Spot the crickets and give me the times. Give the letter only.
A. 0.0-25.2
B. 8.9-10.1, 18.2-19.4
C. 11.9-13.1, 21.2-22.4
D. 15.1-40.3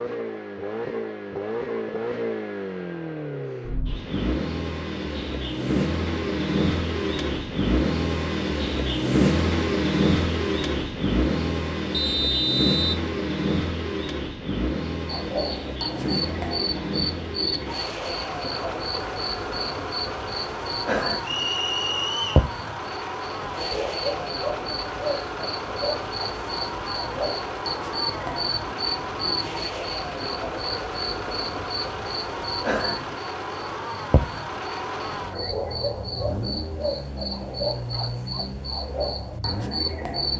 D.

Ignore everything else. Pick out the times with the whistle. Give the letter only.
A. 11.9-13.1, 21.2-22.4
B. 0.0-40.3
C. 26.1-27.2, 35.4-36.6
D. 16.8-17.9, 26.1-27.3
A.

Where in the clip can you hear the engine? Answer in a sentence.
You can hear the engine from 0.0 to 40.3 s.